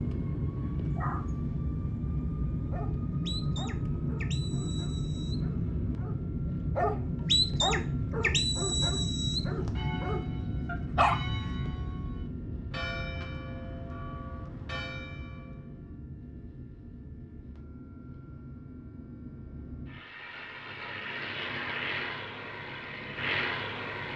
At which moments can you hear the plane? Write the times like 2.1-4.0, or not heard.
0.0-24.1.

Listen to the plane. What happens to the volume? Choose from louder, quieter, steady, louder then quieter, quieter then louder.
quieter then louder.